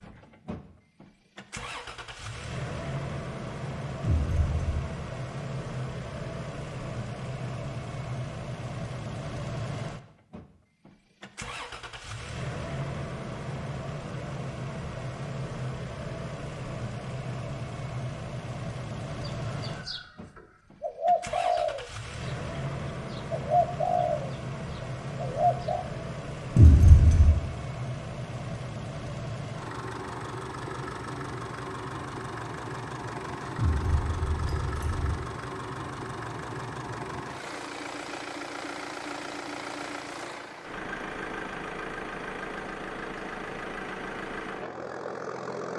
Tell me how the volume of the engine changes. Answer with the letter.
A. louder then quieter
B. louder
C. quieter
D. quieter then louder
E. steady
E.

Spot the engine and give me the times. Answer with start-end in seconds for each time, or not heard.
0.0-45.7.